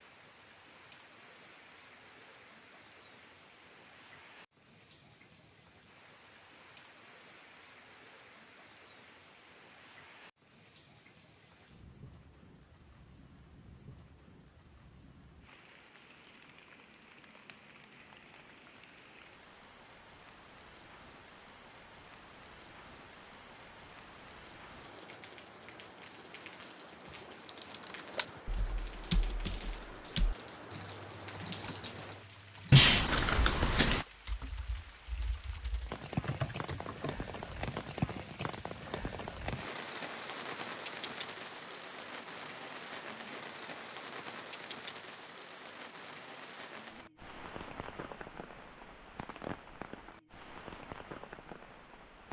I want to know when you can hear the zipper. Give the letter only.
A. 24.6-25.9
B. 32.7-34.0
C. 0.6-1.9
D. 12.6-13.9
B.